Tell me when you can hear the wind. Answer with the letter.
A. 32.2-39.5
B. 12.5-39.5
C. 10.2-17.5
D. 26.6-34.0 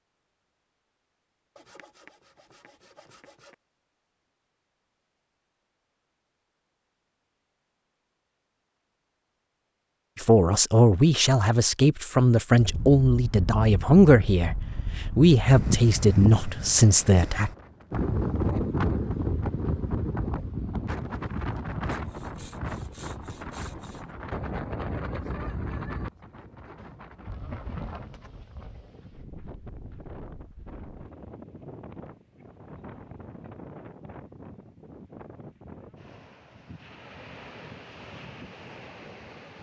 B.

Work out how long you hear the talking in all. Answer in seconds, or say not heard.
7 s.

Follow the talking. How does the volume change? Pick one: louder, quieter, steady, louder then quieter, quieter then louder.
steady.